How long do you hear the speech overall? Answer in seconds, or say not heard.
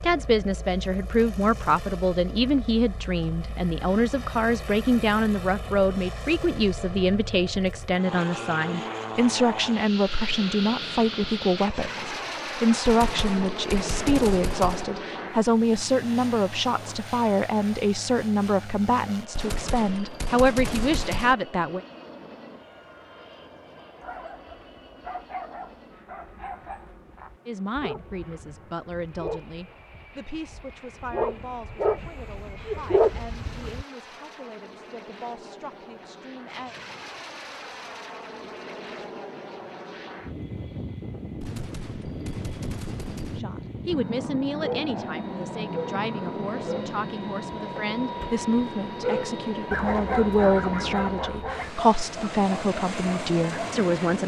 42 s.